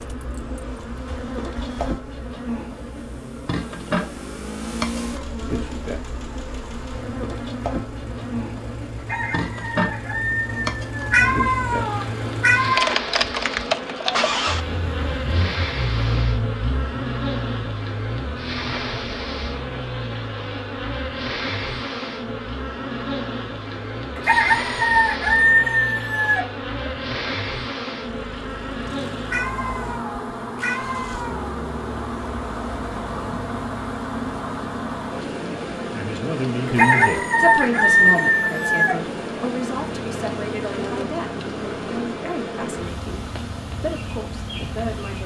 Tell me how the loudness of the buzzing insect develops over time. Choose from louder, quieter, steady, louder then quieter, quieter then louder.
steady.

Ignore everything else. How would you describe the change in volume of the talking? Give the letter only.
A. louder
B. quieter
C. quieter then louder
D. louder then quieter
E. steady
B.